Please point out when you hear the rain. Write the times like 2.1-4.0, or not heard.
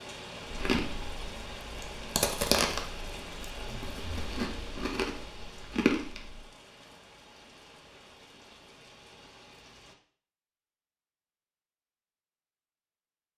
0.0-9.9.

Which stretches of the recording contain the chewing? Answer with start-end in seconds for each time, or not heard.
0.4-6.4.